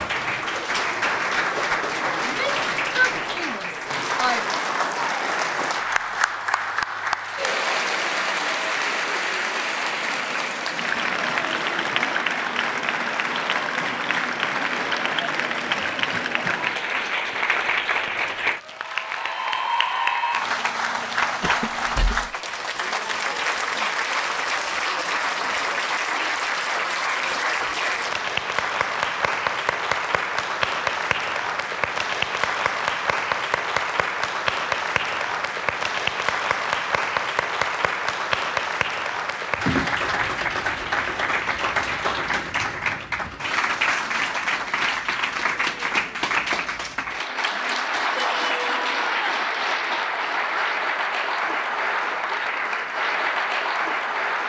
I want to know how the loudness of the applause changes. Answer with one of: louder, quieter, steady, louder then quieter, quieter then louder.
steady.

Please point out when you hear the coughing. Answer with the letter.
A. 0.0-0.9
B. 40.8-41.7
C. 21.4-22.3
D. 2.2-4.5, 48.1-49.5
C.